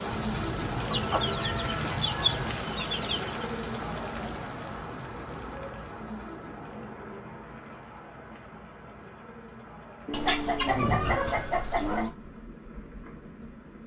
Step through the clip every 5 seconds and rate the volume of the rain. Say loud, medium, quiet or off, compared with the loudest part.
loud, medium, quiet.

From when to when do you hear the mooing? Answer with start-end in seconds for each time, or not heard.
0.1-2.6, 10.1-12.2.